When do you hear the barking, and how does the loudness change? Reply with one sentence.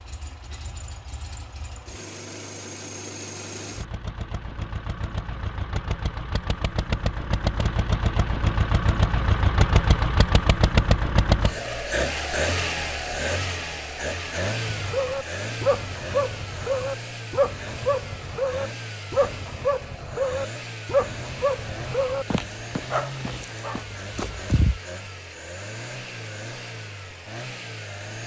You can hear the barking from 14.7 to 24.8 s, getting quieter.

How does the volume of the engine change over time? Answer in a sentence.
The volume of the engine goes up, then down.